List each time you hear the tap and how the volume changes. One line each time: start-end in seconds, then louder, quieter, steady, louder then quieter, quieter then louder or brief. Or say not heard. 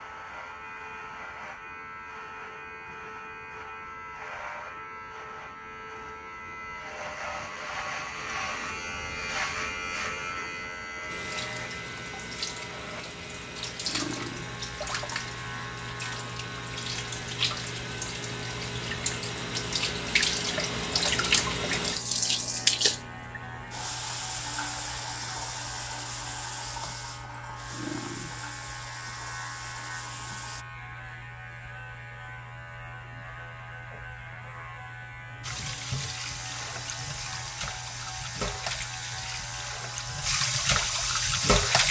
11.1-30.6 louder then quieter
35.4-41.8 louder.